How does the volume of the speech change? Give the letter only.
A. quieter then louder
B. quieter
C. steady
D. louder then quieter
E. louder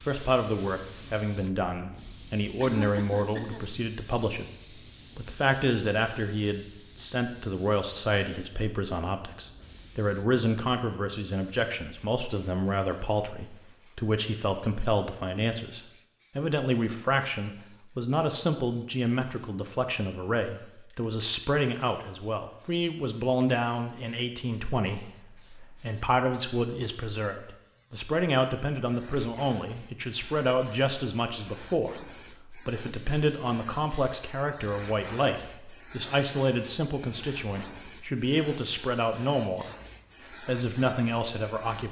C.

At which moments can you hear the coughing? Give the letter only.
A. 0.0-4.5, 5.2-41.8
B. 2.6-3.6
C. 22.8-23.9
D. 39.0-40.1
B.